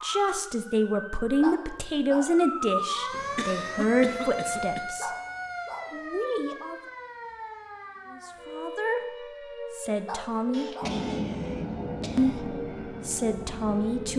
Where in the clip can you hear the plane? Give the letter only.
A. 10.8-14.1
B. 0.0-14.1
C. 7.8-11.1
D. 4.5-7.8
A.